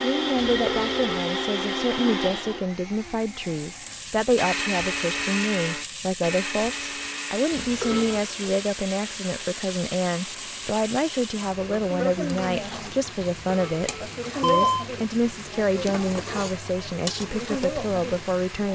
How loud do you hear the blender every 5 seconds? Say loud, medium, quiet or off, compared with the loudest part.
loud, medium, quiet, quiet.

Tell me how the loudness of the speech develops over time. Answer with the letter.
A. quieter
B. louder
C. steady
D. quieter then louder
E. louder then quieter
C.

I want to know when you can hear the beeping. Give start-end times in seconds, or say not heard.
0.3-1.2, 7.5-8.2, 13.2-14.8.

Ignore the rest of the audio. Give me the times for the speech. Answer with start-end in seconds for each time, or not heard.
0.0-18.7.